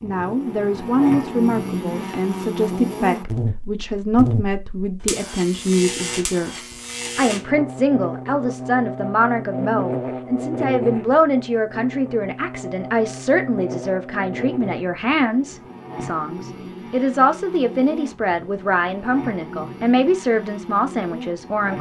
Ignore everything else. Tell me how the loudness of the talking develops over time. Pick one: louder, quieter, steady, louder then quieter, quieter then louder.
steady.